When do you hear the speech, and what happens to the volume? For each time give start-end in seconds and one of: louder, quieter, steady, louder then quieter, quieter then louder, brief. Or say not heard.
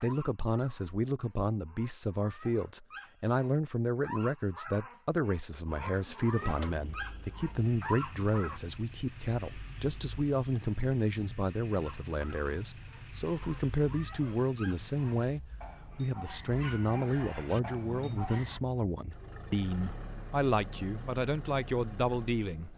0.0-22.7 steady.